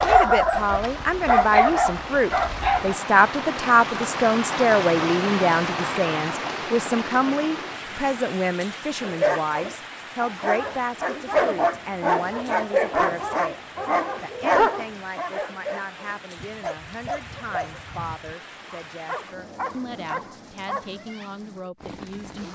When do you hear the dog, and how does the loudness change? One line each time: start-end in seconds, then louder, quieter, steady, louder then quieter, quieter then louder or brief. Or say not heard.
0.0-3.0 brief
9.0-20.9 quieter.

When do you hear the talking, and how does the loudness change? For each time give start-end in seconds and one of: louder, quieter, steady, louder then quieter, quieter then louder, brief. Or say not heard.
0.0-22.4 quieter.